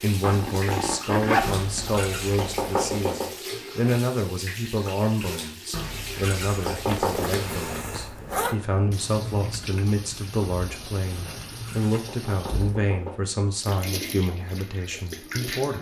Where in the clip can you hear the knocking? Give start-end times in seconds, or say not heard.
1.4-3.3, 5.7-7.3, 11.2-13.2.